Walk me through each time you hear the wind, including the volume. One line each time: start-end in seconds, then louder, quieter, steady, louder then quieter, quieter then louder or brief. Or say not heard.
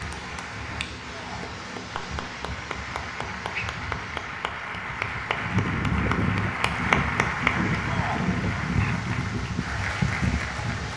0.0-10.9 louder.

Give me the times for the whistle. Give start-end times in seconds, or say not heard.
not heard.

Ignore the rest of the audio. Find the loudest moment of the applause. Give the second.
7 s.